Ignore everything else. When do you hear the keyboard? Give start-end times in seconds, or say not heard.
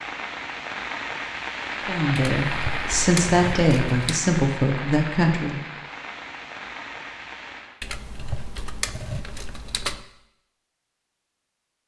2.1-4.2, 7.8-10.1.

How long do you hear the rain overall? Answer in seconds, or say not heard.
8 s.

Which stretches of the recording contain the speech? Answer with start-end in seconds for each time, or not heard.
1.9-5.6.